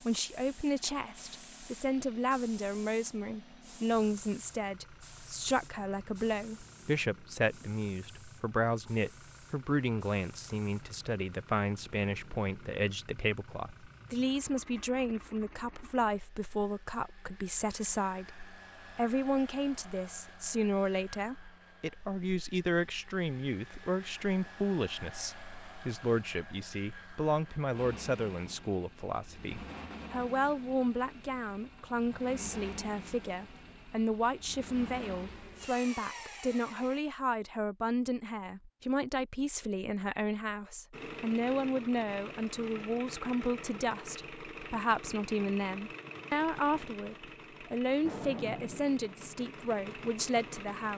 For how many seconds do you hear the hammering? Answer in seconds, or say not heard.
not heard.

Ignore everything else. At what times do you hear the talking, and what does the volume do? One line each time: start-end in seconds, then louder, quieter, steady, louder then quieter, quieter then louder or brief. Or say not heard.
0.0-50.9 steady.